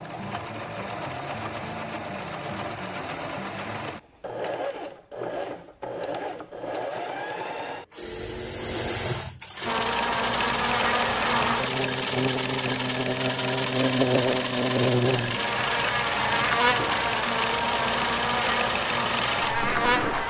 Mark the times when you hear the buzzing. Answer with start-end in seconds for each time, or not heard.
9.7-20.2.